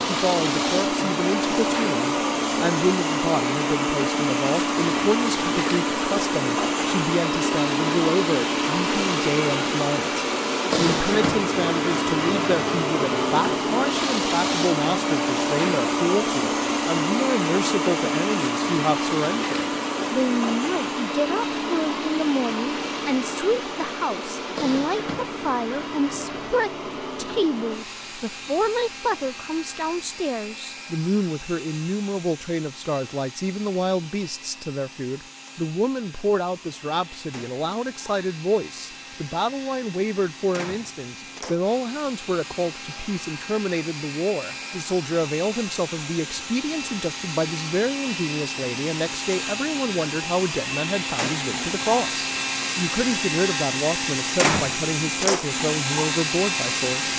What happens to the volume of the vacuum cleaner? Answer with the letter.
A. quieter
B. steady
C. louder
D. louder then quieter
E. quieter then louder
E.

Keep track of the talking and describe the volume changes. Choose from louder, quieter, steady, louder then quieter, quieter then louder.
steady.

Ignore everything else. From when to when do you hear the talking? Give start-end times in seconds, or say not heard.
0.1-57.1.